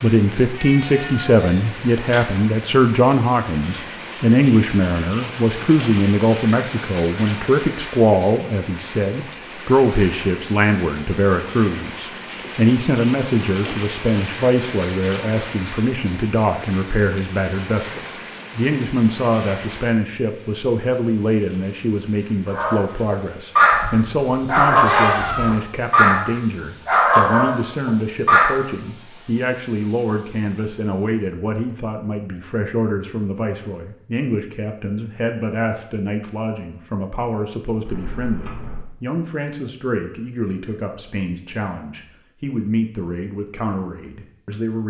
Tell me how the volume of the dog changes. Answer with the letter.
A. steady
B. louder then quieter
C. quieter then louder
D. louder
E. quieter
A.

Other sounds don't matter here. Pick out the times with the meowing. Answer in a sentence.
You can hear the meowing from 0.6 to 2.2 s, from 23.7 to 25.6 s and from 37.9 to 38.9 s.